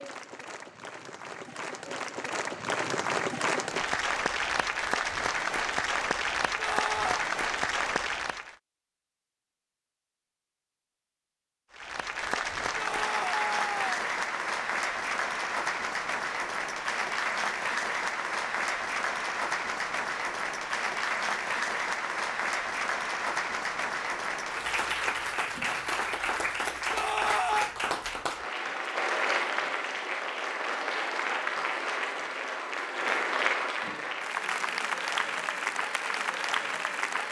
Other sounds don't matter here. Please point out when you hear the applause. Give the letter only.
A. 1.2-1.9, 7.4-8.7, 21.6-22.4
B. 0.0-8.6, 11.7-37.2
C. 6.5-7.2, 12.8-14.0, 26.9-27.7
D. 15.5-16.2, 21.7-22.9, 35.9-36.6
B.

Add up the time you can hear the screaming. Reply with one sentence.
The screaming can be heard for 3 seconds in total.